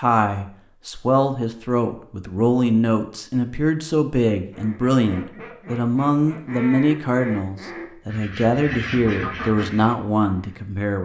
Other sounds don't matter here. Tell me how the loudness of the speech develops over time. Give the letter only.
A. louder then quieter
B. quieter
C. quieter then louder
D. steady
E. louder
D.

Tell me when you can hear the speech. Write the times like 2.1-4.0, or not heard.
0.0-11.0.